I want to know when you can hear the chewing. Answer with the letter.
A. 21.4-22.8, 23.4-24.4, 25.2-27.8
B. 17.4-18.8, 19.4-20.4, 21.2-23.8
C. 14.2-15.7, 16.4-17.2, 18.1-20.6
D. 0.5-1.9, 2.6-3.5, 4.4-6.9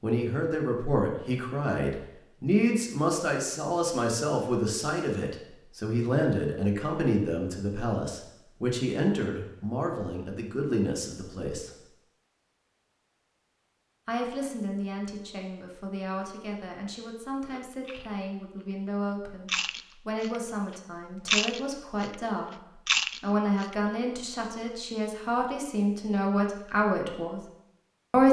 B.